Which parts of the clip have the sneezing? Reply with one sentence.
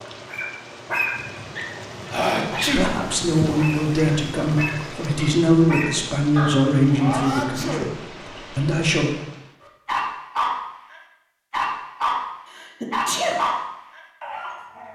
You can hear the sneezing from 2.1 to 2.9 s, from 7.0 to 8.0 s and from 12.6 to 13.4 s.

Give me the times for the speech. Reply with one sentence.
The speech can be heard from 2.8 to 9.1 s.